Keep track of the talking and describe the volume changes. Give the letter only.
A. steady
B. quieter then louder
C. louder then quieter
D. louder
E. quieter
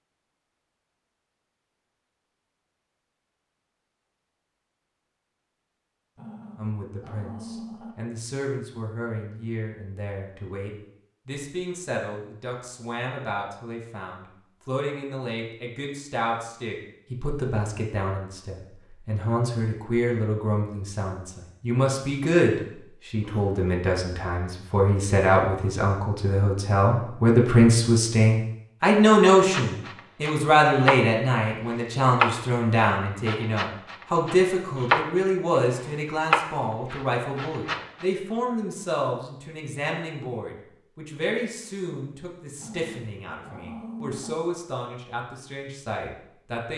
C.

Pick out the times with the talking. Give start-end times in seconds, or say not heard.
6.5-46.7.